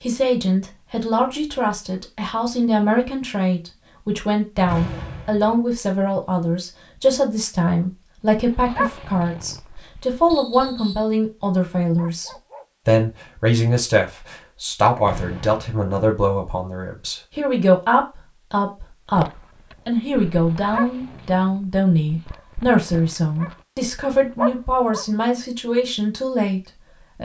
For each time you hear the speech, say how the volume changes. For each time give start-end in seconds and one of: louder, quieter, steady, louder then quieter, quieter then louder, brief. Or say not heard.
0.0-27.1 steady.